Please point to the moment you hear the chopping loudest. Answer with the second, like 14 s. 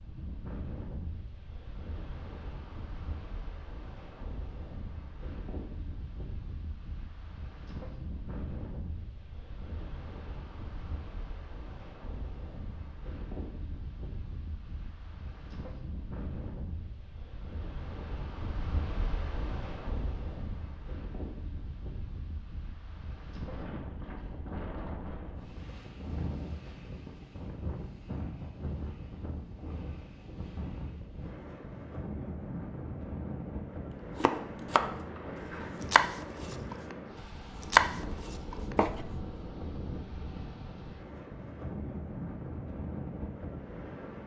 38 s.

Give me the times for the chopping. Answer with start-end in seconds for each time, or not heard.
34.2-35.0, 35.8-37.0, 37.6-39.3.